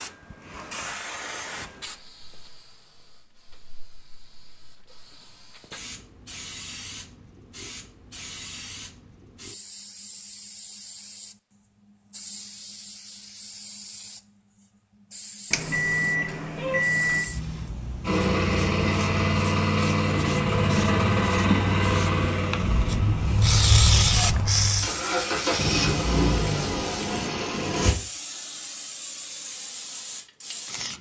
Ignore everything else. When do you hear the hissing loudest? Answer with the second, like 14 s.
24 s.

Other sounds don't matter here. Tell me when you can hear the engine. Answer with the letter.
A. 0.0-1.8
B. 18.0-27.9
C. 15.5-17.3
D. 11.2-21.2
B.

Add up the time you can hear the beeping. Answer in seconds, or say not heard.
2 s.